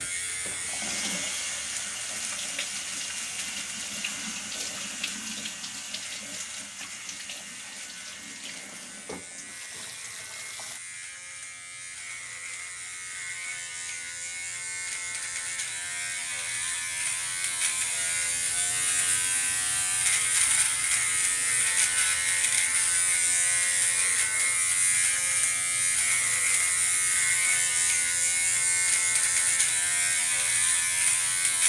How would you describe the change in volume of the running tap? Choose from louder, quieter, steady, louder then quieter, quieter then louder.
quieter.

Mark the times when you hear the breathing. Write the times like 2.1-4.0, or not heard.
not heard.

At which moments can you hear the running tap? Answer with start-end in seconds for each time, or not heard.
0.0-10.8.